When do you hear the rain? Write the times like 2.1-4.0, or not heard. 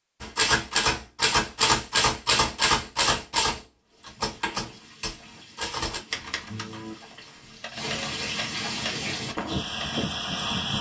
3.9-10.7.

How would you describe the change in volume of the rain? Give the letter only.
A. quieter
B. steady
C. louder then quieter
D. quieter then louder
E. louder
E.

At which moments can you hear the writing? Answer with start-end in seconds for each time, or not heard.
not heard.